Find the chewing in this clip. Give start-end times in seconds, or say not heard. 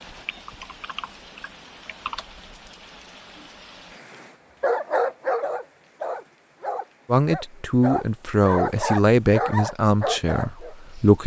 not heard.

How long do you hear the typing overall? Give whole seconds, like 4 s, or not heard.
2 s.